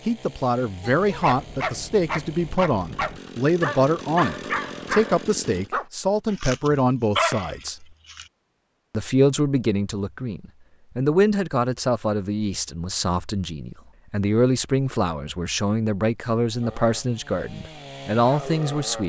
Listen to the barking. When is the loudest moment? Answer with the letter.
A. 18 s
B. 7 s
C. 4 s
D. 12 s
B.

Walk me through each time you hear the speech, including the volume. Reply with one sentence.
The speech can be heard from 0.1 to 7.8 s, at a steady volume; and from 8.9 to 19.0 s, at a steady volume.